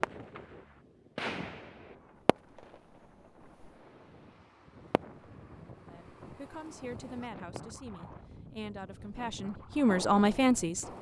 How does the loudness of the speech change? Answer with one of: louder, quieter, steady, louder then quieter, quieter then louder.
louder.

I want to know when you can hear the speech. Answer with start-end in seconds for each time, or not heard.
5.8-10.8.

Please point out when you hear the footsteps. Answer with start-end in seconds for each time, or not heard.
not heard.